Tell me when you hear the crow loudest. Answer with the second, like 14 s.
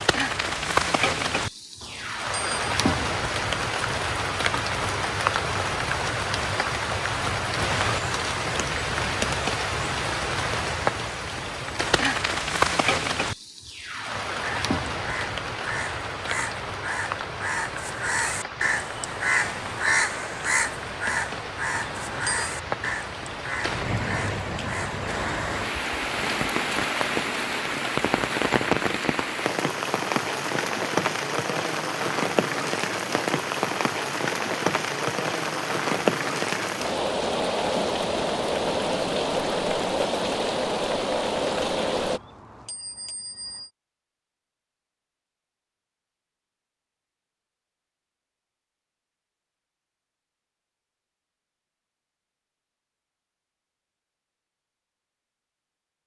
20 s.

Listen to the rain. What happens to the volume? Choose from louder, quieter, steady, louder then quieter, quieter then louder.
quieter then louder.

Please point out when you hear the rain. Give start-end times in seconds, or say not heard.
0.0-42.2.